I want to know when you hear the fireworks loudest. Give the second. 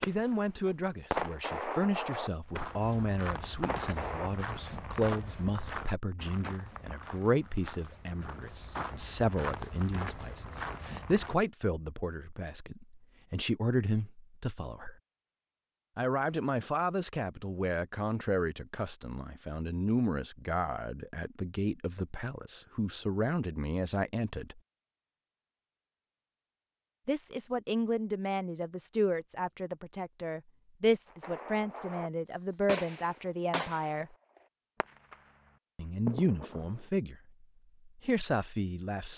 1 s.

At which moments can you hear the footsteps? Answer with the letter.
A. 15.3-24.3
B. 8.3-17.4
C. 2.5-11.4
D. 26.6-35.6
C.